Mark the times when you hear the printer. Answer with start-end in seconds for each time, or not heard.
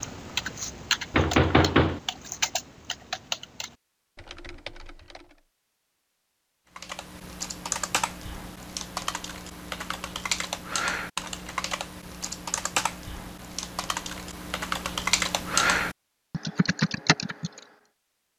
not heard.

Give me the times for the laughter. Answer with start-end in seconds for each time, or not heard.
not heard.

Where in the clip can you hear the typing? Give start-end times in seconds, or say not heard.
0.0-5.4, 6.8-17.6.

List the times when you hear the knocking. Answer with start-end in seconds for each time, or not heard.
1.1-2.0.